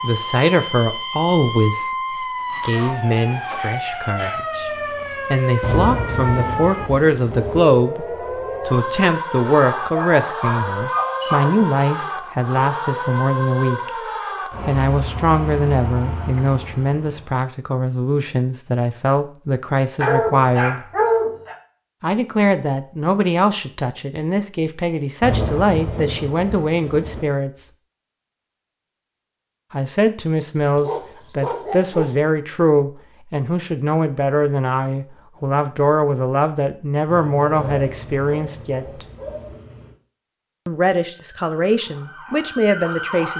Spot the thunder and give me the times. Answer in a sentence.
You can hear the thunder from 5.6 to 7.7 s, from 25.2 to 27.2 s and from 37.5 to 39.6 s.